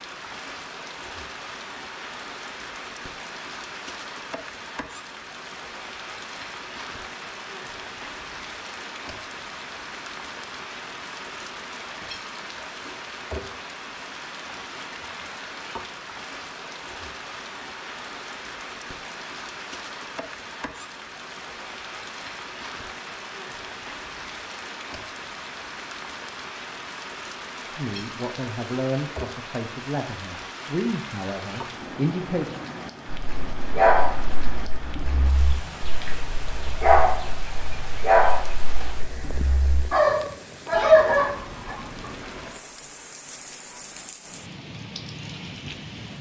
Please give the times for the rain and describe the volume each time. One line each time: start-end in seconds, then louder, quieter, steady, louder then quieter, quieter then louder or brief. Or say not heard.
0.0-46.1 steady.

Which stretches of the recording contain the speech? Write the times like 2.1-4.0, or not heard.
27.6-32.6.